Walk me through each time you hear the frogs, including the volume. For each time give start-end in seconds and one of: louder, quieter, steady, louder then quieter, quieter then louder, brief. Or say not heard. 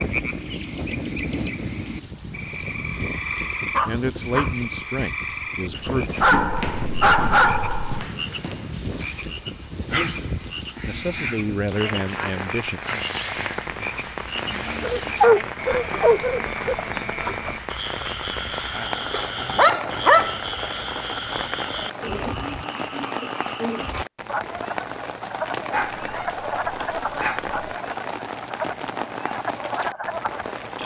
0.0-30.8 steady.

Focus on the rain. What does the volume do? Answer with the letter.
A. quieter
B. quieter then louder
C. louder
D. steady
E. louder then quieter
D.